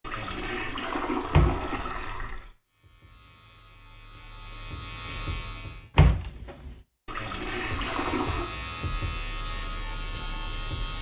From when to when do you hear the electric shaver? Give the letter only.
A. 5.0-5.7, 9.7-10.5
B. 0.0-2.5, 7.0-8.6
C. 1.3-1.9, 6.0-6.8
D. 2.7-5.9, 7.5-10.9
D.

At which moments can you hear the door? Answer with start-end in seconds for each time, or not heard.
1.3-1.9, 6.0-6.8.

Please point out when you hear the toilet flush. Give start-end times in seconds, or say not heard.
0.0-2.5, 7.0-8.6.